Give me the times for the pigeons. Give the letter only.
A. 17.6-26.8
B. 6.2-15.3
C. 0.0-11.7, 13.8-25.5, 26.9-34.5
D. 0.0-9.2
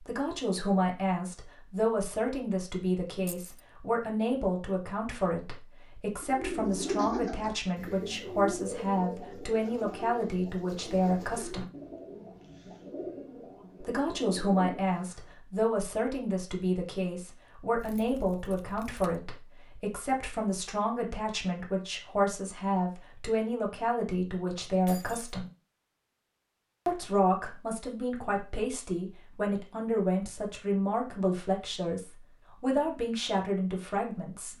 B.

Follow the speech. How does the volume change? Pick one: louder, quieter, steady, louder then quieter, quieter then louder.
steady.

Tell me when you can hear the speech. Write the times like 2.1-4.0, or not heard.
0.0-11.7, 13.8-25.5, 26.9-34.5.